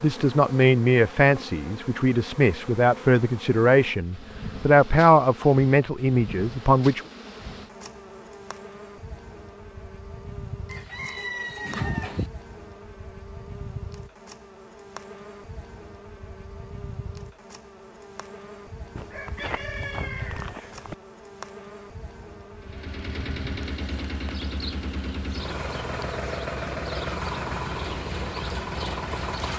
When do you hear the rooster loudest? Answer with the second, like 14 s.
12 s.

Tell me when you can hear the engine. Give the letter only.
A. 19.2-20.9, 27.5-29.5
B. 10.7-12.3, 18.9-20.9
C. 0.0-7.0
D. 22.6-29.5
D.